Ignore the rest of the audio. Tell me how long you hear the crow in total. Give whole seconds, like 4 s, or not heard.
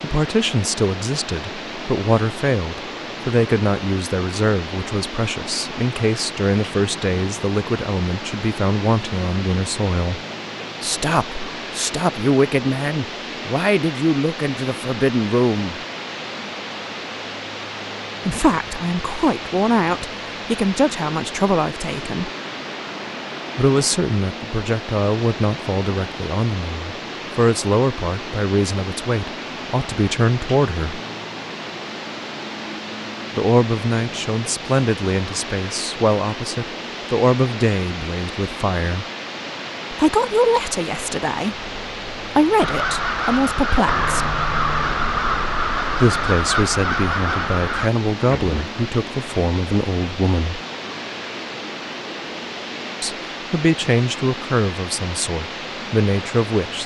6 s.